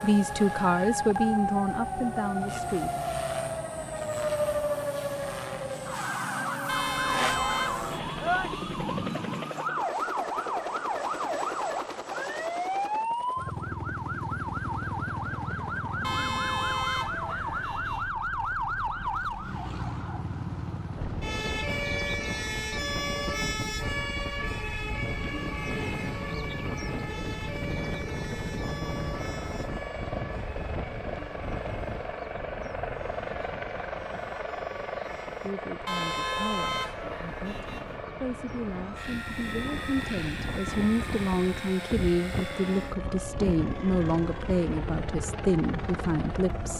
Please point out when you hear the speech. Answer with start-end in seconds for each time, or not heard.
0.0-2.9, 35.4-46.7.